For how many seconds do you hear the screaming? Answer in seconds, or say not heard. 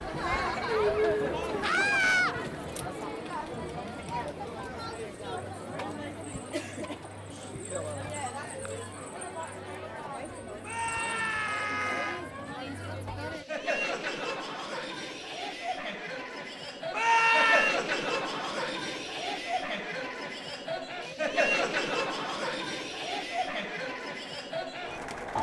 3 s.